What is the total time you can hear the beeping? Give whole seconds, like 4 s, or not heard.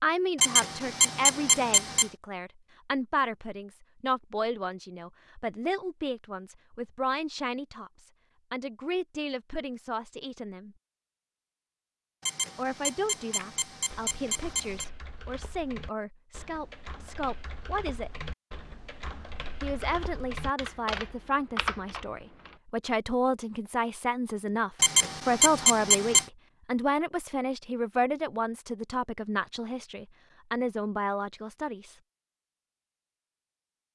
6 s.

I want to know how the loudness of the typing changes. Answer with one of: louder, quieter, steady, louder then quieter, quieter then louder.
louder.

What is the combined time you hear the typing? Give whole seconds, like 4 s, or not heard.
9 s.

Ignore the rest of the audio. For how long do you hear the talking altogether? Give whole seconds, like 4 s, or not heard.
29 s.